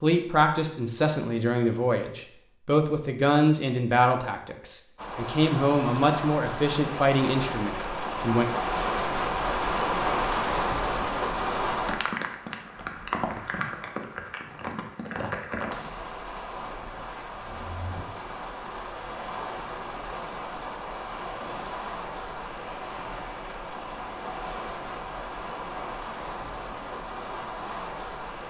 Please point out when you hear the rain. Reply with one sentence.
You can hear the rain from 5.0 to 28.4 s.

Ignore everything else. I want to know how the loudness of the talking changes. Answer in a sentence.
The volume of the talking stays about the same.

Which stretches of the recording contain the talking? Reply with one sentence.
You can hear the talking from 0.0 to 8.4 s.